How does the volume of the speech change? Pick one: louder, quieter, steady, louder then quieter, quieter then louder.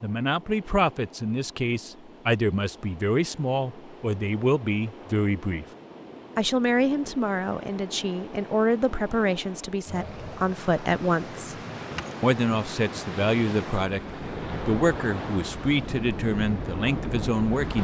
steady.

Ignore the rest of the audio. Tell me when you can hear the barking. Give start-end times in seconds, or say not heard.
not heard.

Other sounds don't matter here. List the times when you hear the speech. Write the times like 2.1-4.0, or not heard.
0.0-5.7, 6.3-11.6, 12.2-17.7.